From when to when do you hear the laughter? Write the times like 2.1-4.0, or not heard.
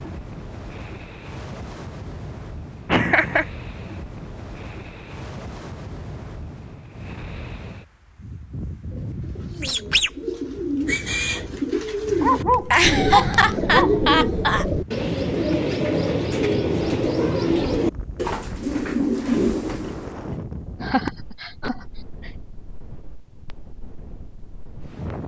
2.9-3.5, 12.5-14.7, 20.8-22.3.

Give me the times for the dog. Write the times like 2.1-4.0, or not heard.
12.2-13.9.